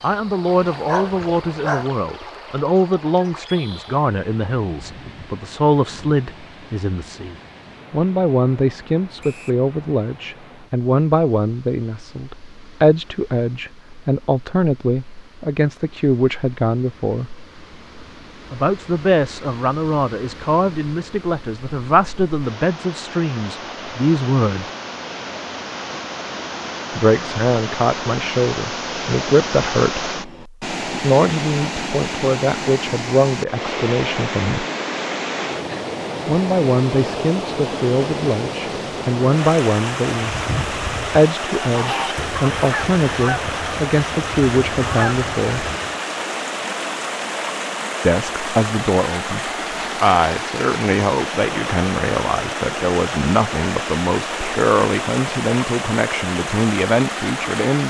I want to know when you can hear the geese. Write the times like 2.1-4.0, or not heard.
40.1-46.0.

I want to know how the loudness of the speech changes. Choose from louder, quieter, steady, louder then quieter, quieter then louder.
steady.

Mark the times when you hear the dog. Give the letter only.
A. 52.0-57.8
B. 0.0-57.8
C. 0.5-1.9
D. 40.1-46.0
C.